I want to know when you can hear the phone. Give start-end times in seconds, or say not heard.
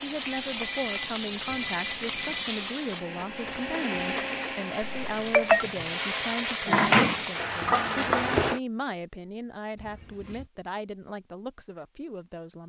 0.3-2.5, 4.8-5.7, 9.8-10.4.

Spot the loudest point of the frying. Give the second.
7 s.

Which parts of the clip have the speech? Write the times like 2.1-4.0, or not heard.
0.0-12.6.